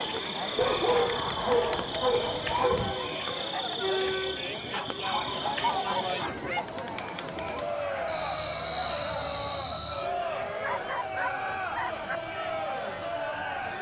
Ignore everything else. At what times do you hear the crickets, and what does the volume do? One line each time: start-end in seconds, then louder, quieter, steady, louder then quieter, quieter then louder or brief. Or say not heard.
0.0-13.7 steady.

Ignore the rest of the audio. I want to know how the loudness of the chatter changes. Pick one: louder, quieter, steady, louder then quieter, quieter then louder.
steady.